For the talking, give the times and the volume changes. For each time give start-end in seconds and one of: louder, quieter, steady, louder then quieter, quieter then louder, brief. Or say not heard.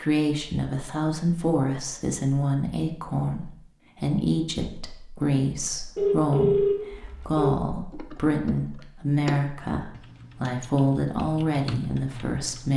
0.0-12.7 steady.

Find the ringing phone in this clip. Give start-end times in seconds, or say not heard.
6.0-7.5.